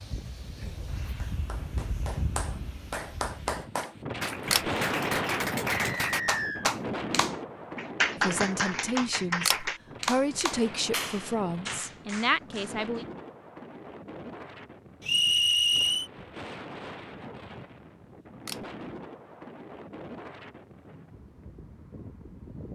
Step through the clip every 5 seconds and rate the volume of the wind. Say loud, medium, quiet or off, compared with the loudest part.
loud, loud, medium, medium, medium.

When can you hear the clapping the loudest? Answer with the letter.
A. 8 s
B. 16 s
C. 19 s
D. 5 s
A.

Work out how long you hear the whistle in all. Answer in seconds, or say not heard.
2 s.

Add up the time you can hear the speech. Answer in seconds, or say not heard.
5 s.